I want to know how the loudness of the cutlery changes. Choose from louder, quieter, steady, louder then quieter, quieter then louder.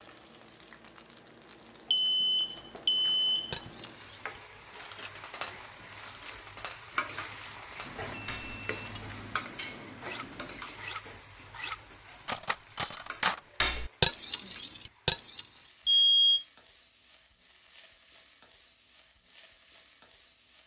louder.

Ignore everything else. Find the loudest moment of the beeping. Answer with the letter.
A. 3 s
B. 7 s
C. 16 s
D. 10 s
C.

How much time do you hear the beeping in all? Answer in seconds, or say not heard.
5 s.